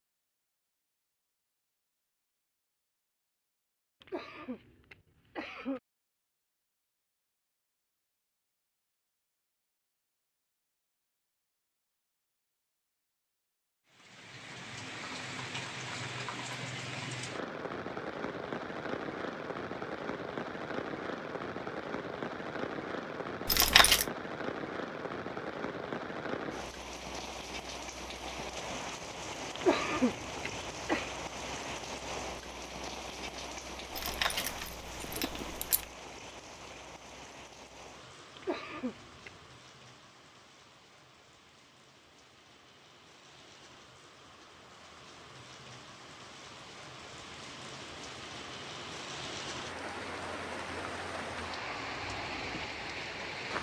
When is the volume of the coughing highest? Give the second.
30 s.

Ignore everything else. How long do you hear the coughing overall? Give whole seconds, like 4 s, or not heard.
4 s.